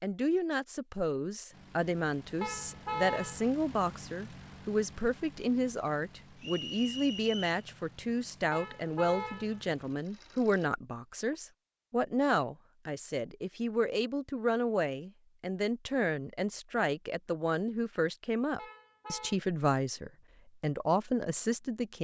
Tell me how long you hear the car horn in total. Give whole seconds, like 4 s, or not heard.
3 s.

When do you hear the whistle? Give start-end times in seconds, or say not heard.
6.4-7.6.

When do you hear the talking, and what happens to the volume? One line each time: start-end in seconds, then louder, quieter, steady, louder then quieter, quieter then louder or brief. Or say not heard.
0.0-21.9 steady.